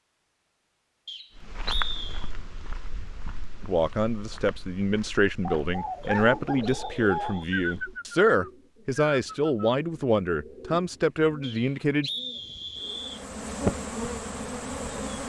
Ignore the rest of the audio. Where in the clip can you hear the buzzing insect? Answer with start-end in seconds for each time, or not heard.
12.3-15.2.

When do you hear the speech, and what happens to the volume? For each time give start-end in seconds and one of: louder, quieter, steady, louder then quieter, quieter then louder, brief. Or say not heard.
3.6-12.1 steady.